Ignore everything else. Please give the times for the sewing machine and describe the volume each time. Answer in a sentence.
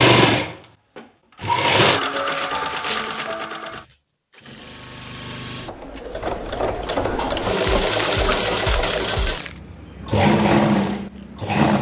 The sewing machine can be heard from 0.0 to 11.7 s, getting quieter then louder.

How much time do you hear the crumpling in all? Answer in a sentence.
You can hear the crumpling for 4 seconds altogether.